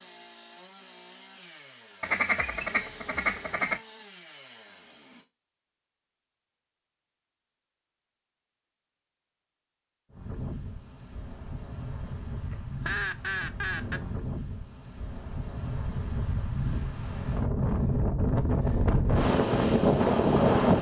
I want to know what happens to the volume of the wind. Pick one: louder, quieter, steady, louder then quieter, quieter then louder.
louder.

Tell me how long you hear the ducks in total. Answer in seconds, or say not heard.
4 s.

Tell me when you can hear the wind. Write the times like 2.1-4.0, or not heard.
10.1-20.7.